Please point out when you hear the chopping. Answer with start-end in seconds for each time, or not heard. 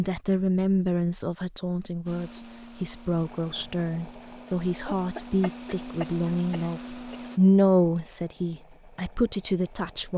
not heard.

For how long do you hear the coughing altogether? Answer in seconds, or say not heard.
2 s.